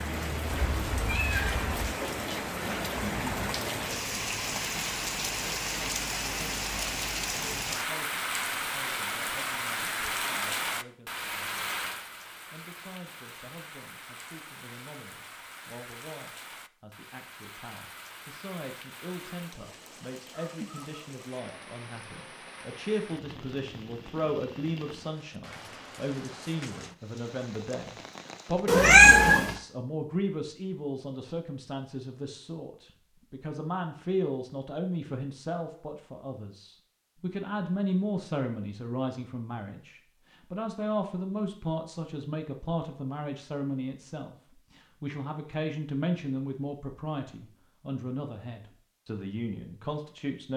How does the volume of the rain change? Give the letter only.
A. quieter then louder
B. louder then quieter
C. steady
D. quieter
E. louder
D.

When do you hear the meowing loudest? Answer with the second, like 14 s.
29 s.